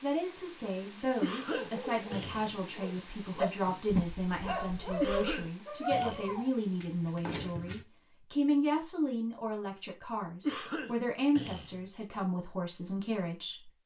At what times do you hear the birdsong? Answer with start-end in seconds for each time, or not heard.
not heard.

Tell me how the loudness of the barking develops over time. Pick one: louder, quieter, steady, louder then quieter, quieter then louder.
louder then quieter.